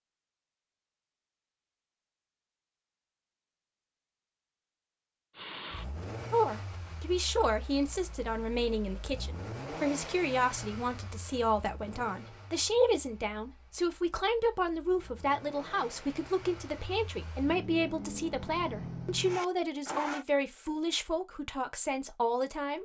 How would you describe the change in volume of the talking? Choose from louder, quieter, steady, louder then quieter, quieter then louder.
steady.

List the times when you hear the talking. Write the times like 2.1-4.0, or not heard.
6.3-22.7.